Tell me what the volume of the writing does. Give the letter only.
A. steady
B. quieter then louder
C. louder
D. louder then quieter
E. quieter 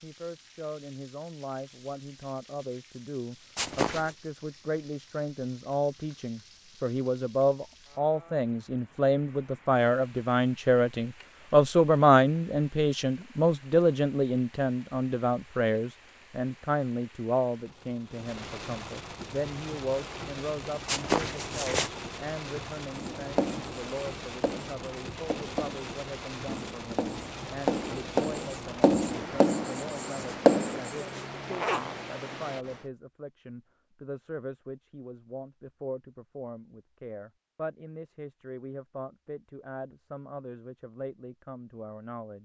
C.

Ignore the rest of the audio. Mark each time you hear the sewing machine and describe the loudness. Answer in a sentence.
You can't hear the sewing machine here.